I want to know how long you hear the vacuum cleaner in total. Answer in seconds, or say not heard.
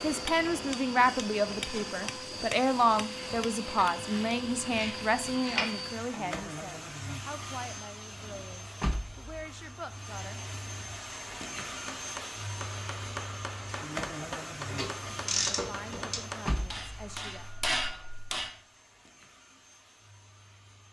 21 s.